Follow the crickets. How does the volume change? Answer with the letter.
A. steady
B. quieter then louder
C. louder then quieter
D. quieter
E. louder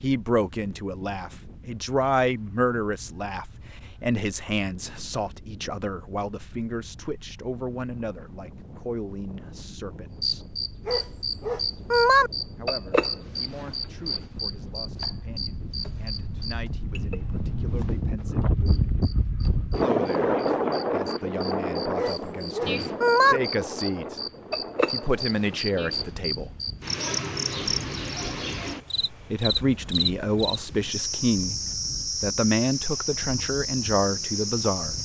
B.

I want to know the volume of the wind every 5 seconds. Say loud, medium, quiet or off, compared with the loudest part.
quiet, quiet, quiet, loud, loud, quiet, quiet.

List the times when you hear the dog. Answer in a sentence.
The dog can be heard from 10.8 to 12.3 s and from 21.9 to 23.4 s.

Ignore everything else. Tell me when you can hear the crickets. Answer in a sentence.
You can hear the crickets from 10.2 to 35.0 s.